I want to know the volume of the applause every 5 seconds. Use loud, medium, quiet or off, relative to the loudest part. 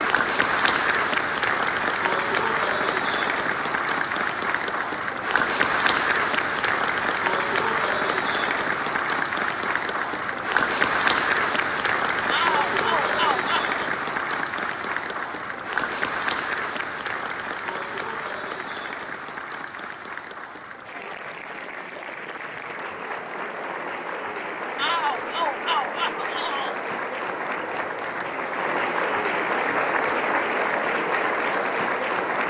loud, loud, loud, medium, medium, loud, loud.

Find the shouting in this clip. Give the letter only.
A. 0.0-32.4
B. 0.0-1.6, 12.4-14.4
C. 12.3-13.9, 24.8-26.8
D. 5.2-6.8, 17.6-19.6
C.